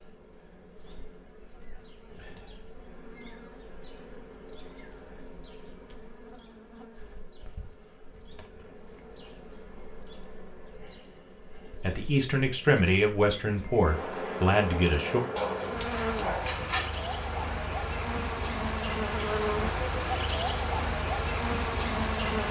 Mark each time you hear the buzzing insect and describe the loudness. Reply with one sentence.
You can hear the buzzing insect from 0.0 to 22.4 s, getting louder.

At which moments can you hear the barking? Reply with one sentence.
The barking can be heard from 15.3 to 16.9 s.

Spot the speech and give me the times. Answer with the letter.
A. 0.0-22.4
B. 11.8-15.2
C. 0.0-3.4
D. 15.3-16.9
B.